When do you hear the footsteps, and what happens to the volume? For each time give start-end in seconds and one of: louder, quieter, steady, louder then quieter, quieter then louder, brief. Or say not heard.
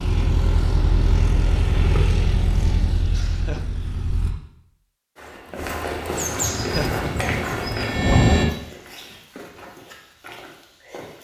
5.2-11.1 quieter.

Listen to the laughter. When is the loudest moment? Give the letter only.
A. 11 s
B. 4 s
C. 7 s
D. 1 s
C.